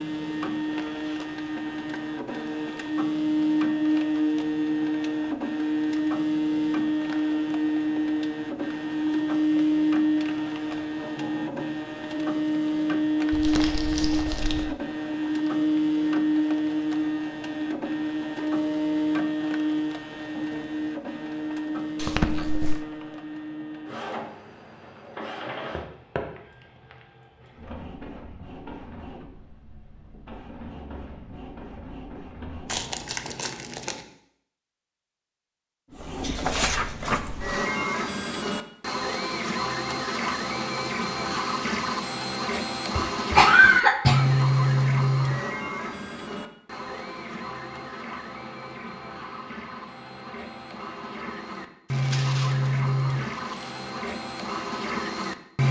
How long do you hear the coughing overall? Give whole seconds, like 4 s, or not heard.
2 s.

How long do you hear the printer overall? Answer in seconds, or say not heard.
53 s.